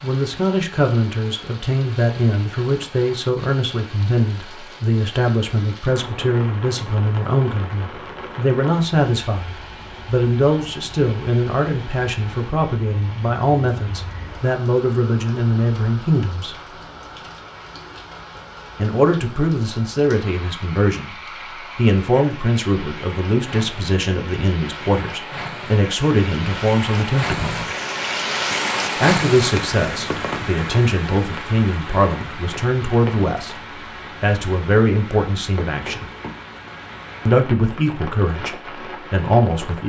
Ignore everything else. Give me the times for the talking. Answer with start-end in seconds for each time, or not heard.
0.0-16.6, 18.8-27.7, 28.9-36.0, 37.2-39.8.